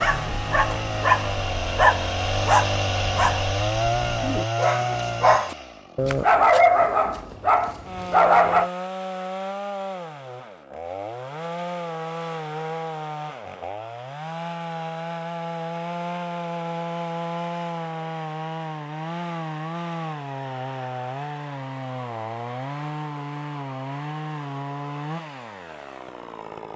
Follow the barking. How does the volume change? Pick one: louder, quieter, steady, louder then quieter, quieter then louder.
quieter then louder.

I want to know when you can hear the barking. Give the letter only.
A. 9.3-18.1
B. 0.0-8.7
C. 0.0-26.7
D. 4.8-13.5
B.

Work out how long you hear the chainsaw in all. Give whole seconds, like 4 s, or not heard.
27 s.